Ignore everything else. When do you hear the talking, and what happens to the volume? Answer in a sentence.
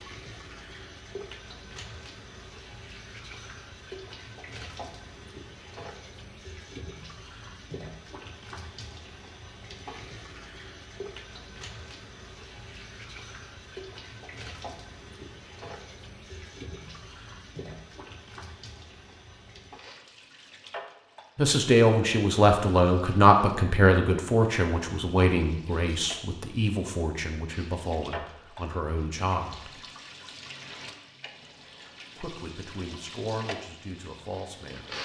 You can hear the talking from 21.4 to 29.8 s, getting quieter; and briefly from 32.1 to 34.9 s.